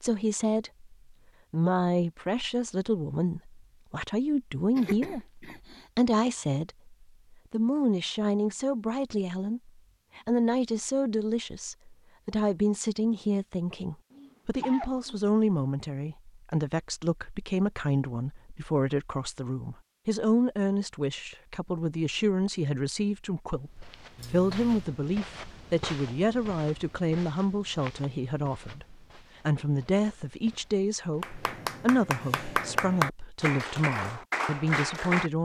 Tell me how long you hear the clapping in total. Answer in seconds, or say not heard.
4 s.